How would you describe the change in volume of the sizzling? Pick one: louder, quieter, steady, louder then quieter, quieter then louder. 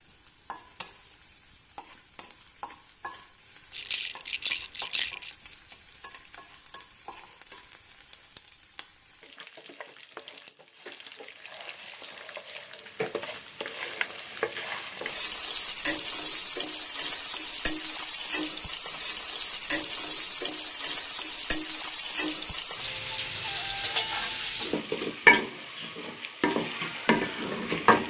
louder.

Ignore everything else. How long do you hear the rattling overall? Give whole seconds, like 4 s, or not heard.
2 s.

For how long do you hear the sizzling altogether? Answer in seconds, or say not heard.
28 s.